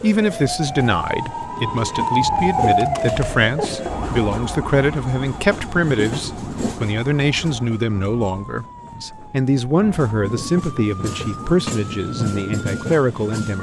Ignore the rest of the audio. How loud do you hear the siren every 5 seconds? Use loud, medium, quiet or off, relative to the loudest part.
loud, quiet, quiet.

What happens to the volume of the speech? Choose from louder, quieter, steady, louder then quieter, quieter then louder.
steady.